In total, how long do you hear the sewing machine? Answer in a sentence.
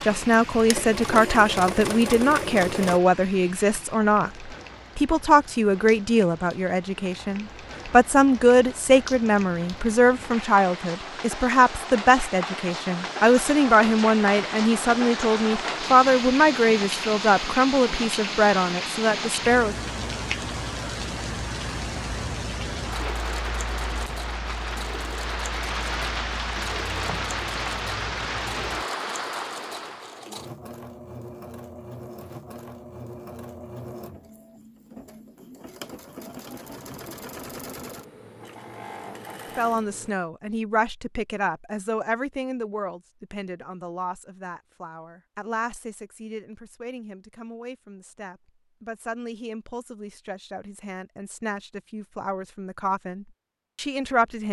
You can hear the sewing machine for 20 seconds altogether.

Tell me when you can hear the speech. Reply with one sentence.
The speech can be heard from 0.0 to 19.8 s and from 39.5 to 54.4 s.